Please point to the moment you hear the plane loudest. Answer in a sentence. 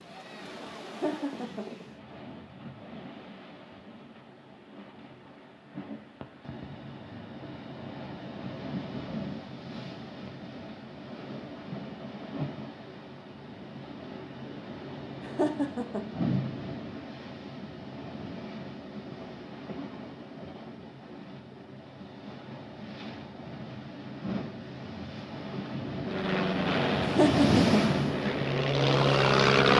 The loudest moment of the plane is at 29 seconds.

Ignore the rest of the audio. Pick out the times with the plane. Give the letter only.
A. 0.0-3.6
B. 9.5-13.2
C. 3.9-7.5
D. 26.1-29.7
D.